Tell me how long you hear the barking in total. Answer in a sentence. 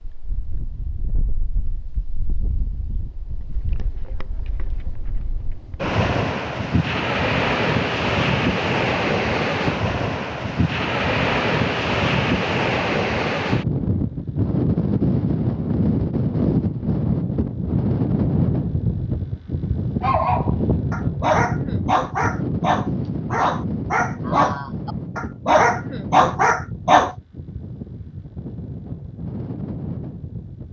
The barking can be heard for 7 seconds in total.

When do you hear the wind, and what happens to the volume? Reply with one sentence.
You can hear the wind from 0.0 to 30.6 s, getting louder then quieter.